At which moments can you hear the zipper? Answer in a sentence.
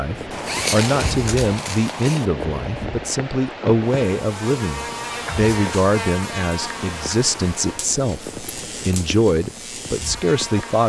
You can hear the zipper from 0.3 to 2.3 s and from 8.4 to 9.2 s.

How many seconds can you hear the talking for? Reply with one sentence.
You can hear the talking for 11 seconds altogether.